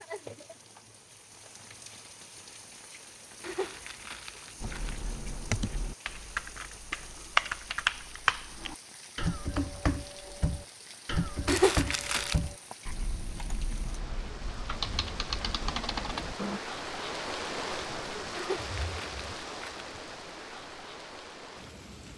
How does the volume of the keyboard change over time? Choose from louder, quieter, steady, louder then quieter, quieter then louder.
louder then quieter.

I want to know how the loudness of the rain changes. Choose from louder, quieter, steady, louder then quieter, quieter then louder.
louder.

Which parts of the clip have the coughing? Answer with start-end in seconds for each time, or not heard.
not heard.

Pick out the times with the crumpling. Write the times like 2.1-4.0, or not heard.
3.4-5.1, 11.4-12.4, 18.4-19.9.